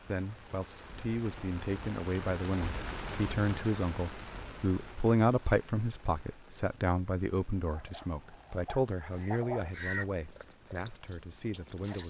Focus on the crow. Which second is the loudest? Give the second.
10 s.